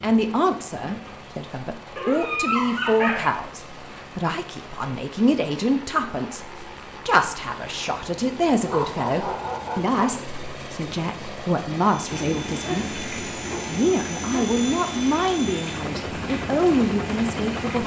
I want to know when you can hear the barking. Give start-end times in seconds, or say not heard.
1.9-3.5, 8.7-10.2, 12.6-14.5.